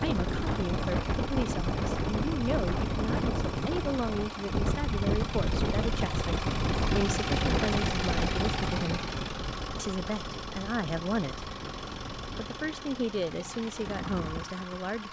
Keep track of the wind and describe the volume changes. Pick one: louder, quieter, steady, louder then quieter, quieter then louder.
quieter.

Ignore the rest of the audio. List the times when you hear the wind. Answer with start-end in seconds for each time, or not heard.
0.0-12.6.